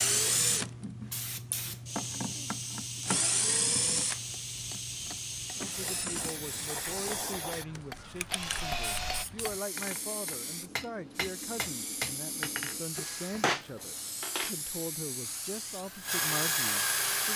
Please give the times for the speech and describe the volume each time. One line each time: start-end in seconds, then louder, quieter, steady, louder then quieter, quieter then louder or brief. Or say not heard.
5.5-17.3 steady.